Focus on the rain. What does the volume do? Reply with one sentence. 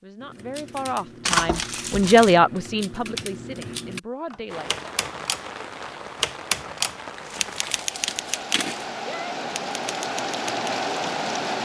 The loudness of the rain goes up.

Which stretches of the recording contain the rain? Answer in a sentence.
The rain can be heard from 4.5 to 11.6 s.